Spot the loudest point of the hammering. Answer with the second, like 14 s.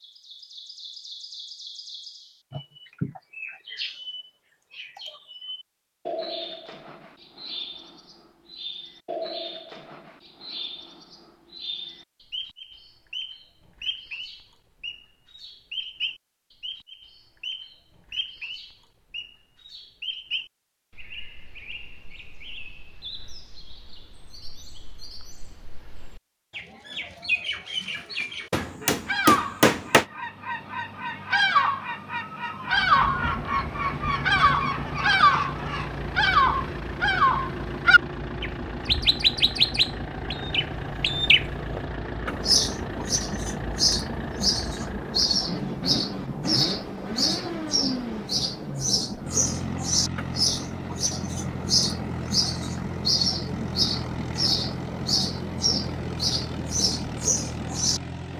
30 s.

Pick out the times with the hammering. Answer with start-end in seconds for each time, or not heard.
28.5-30.1.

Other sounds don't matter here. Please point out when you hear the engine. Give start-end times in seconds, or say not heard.
32.6-58.3.